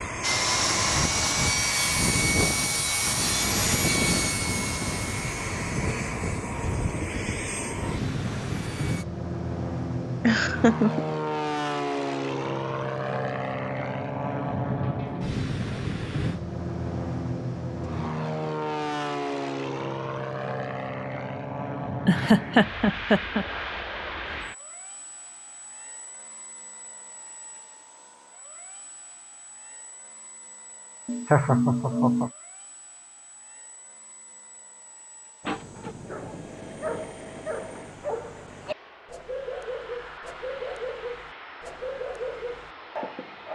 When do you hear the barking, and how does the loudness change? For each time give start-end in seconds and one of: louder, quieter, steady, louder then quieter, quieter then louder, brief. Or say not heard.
35.4-43.5 steady.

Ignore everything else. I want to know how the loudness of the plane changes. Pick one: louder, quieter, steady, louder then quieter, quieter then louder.
quieter then louder.